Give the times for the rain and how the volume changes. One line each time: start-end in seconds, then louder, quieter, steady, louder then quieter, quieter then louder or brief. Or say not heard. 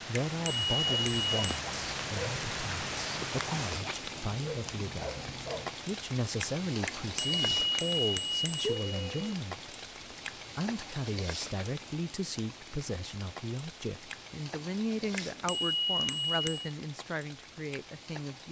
0.0-18.4 quieter.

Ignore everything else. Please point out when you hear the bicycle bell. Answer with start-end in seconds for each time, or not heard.
0.3-1.4, 6.8-9.3, 15.2-16.8.